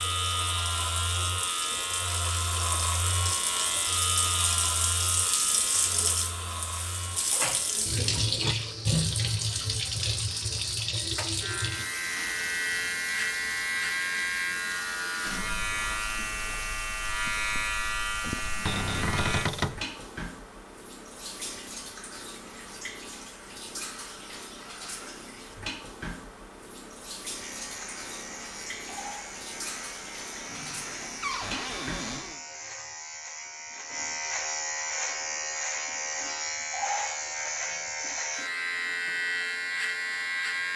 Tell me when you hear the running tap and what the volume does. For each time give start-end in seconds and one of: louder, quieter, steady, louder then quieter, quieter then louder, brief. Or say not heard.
0.0-32.4 quieter.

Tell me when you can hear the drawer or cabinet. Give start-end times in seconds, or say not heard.
7.3-8.6, 18.6-19.8, 31.2-32.4.